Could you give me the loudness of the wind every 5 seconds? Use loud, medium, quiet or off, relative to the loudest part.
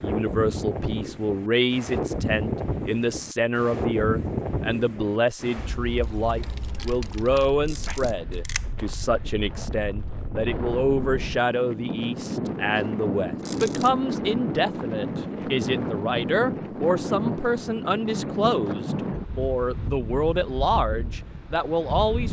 loud, medium, loud, loud, medium.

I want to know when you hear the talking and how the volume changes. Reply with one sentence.
You can hear the talking from 0.0 to 22.2 s, at a steady volume.